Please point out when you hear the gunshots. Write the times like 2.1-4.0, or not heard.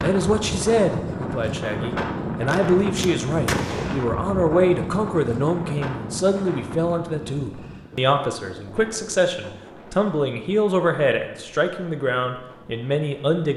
2.5-4.0.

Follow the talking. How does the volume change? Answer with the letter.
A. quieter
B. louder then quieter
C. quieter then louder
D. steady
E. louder
D.